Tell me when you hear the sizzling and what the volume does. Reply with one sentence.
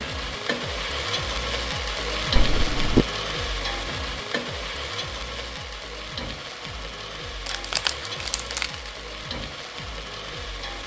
The sizzling can be heard from 0.0 to 10.8 s, getting quieter.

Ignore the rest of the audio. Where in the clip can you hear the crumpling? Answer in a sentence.
The crumpling can be heard from 2.4 to 3.0 s and from 7.5 to 8.7 s.